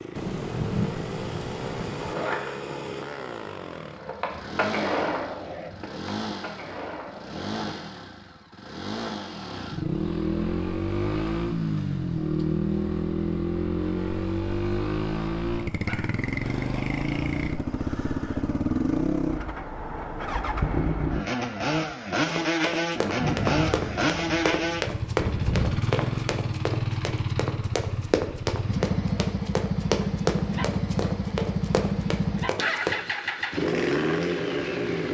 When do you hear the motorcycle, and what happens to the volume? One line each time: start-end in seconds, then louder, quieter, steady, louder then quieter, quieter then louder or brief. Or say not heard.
0.0-35.0 louder.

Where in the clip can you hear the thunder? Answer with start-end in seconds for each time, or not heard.
0.1-2.1, 23.1-25.8.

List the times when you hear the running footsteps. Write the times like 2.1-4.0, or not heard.
22.2-33.0.